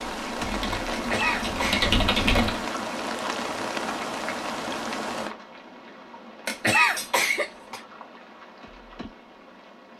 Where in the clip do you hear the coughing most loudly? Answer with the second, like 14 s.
7 s.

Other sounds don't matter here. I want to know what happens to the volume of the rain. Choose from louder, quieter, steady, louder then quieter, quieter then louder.
quieter.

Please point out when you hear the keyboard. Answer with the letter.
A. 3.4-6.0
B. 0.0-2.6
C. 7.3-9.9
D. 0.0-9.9
B.